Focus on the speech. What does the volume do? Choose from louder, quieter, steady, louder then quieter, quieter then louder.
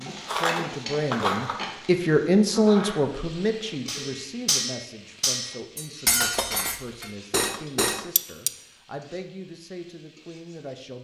quieter.